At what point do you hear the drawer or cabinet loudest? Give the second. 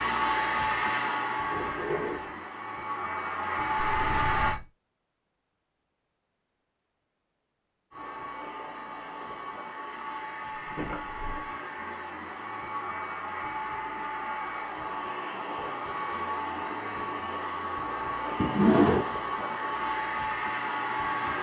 19 s.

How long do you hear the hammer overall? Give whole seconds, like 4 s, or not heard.
not heard.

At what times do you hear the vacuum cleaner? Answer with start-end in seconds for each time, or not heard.
0.0-4.6, 7.9-21.3.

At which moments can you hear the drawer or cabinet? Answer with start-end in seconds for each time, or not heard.
1.4-2.4, 10.6-11.6, 18.4-19.1.